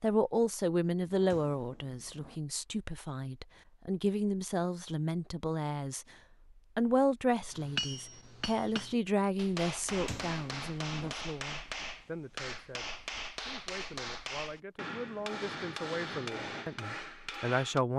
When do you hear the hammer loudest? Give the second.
8 s.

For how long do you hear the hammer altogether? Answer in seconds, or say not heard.
10 s.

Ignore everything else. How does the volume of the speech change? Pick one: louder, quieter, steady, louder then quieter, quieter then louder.
quieter then louder.